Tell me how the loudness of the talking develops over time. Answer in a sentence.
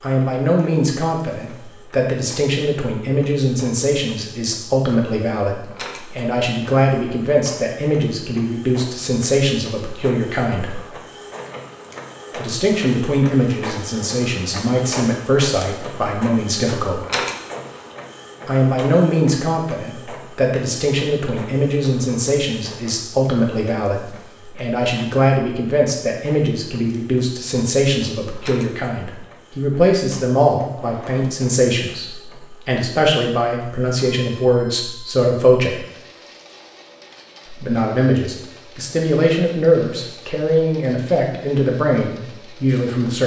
The loudness of the talking stays about the same.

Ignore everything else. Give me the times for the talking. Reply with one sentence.
You can hear the talking from 0.0 to 10.8 s, from 12.3 to 17.1 s, from 18.4 to 35.9 s and from 37.5 to 43.2 s.